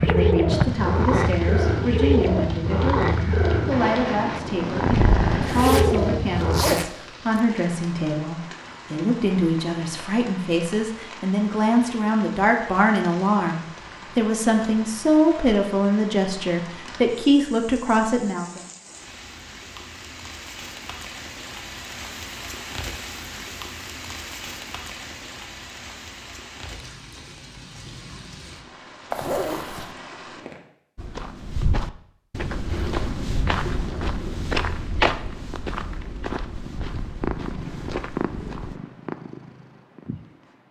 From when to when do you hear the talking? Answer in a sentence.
You can hear the talking from 0.0 to 18.6 s.